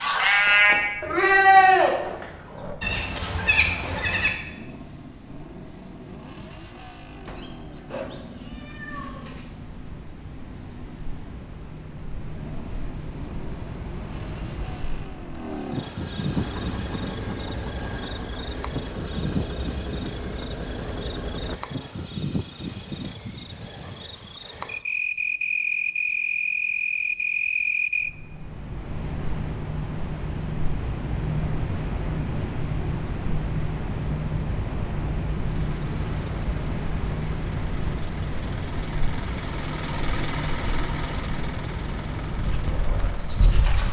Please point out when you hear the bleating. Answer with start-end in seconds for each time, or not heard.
0.0-4.3, 42.3-43.8.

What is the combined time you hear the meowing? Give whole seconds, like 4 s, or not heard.
2 s.